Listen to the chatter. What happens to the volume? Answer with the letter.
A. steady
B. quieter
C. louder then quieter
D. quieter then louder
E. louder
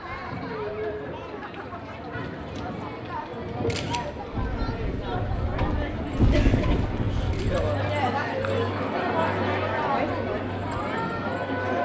E.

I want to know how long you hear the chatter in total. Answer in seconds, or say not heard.
12 s.